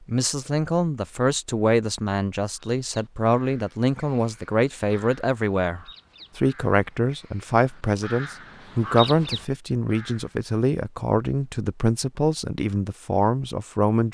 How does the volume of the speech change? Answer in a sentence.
The volume of the speech stays about the same.